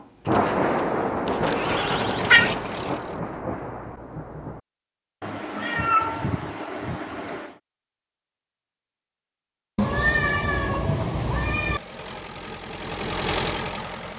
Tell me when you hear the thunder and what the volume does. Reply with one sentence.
The thunder can be heard from 0.2 to 4.6 s, getting quieter.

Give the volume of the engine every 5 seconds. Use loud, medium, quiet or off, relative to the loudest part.
loud, off, loud.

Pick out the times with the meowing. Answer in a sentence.
You can hear the meowing from 1.2 to 2.5 s, from 5.2 to 7.5 s and from 9.8 to 11.8 s.